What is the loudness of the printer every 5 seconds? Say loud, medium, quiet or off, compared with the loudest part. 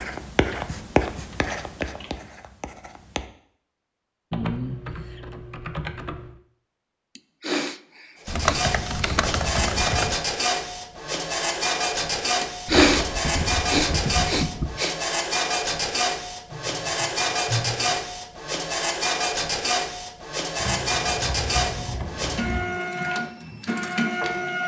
off, loud, loud, loud, loud.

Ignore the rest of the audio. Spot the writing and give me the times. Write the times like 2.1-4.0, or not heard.
0.0-3.2.